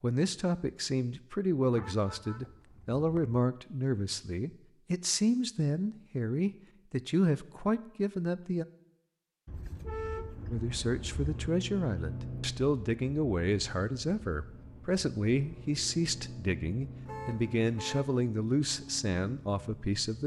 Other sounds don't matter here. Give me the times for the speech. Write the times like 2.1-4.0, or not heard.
0.0-8.7, 10.5-20.2.